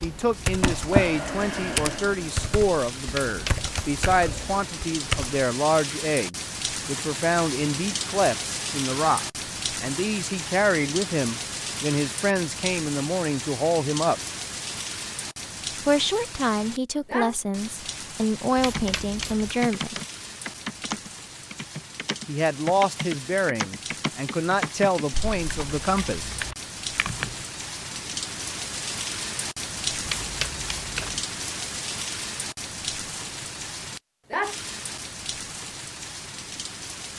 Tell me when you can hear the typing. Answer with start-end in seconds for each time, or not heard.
0.0-5.5, 18.6-27.4.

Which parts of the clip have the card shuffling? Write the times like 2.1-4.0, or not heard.
3.1-4.2, 18.6-19.6, 30.1-31.2.